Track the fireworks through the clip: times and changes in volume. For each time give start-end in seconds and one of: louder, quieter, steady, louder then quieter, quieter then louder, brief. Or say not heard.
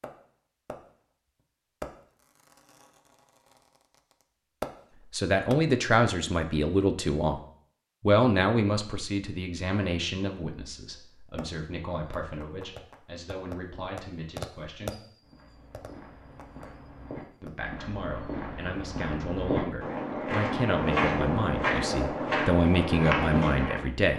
0.0-0.8 brief
1.8-4.7 brief
11.3-17.6 louder then quieter.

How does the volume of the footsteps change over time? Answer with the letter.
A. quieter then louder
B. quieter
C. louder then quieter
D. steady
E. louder
E.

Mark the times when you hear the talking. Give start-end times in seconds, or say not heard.
5.1-7.4, 8.0-15.0, 17.4-24.1.